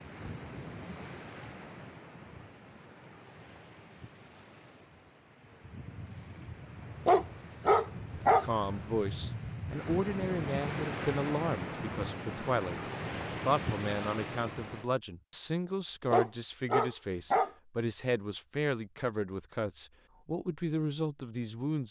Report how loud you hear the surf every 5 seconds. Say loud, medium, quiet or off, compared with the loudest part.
medium, medium, loud, off, off.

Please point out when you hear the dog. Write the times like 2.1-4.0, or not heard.
7.0-8.4, 16.1-17.5.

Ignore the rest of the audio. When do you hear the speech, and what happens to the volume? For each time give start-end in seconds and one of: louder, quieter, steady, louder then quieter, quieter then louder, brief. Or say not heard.
8.2-21.8 steady.